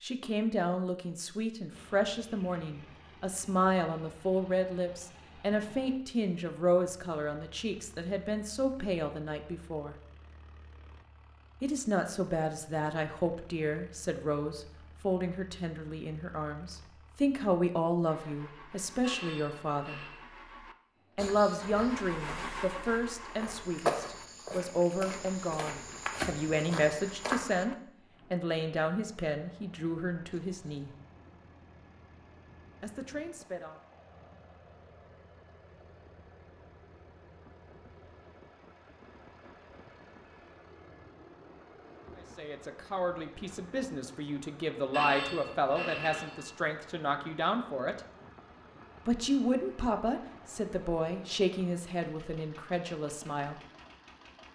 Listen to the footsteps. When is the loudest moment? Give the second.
24 s.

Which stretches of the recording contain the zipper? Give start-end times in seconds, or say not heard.
not heard.